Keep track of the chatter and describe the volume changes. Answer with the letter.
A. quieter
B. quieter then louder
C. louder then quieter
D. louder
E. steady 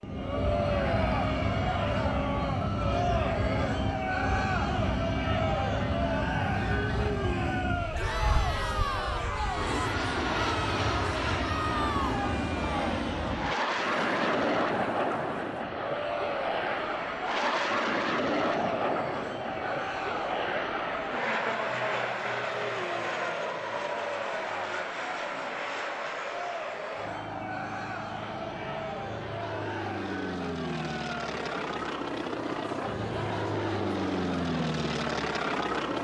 A.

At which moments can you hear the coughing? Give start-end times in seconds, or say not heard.
not heard.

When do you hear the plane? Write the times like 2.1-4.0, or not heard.
0.0-35.9.